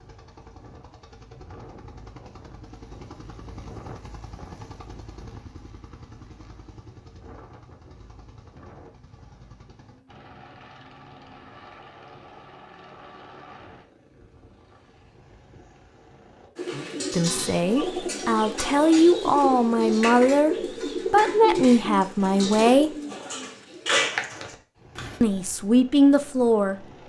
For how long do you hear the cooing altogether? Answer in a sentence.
You can hear the cooing for 9 seconds altogether.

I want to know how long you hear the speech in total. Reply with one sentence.
The speech can be heard for 7 seconds in total.